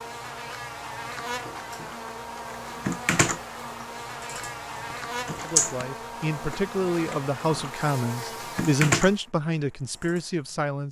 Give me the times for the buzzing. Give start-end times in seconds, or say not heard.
0.0-9.2.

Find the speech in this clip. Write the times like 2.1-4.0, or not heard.
5.4-10.8.